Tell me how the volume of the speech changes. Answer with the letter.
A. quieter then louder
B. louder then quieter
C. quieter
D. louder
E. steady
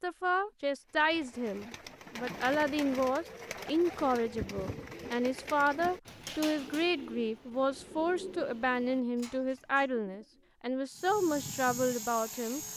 E.